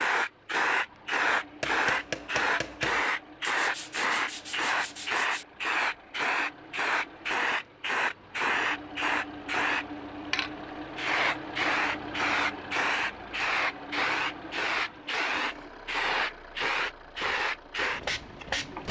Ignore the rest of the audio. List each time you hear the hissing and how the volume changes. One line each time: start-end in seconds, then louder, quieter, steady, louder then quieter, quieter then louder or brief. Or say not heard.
0.0-18.8 steady.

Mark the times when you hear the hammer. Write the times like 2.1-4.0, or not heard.
1.6-3.0.